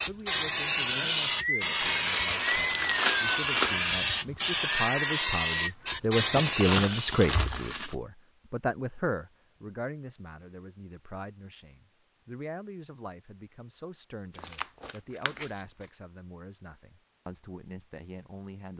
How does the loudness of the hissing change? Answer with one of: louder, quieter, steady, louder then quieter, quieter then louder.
steady.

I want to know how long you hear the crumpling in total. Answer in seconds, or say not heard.
5 s.